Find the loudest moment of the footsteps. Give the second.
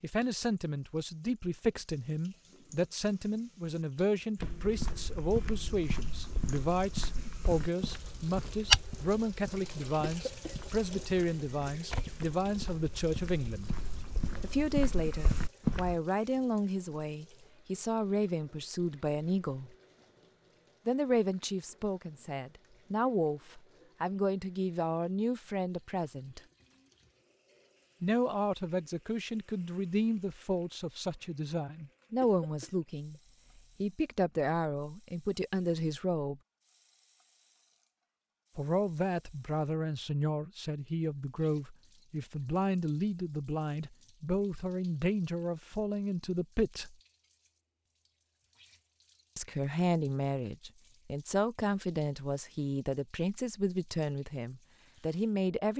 9 s.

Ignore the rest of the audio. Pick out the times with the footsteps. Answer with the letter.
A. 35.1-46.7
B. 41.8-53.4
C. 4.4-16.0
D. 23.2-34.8
C.